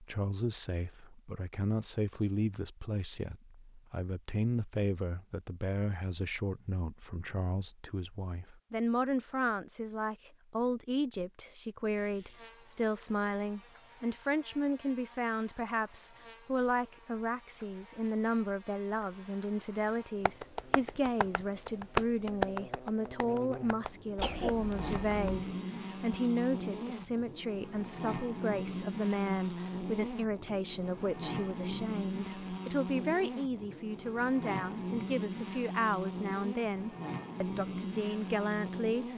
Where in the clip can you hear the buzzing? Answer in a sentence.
The buzzing can be heard from 11.9 to 39.1 s.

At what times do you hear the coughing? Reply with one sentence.
The coughing can be heard from 24.1 to 25.4 s.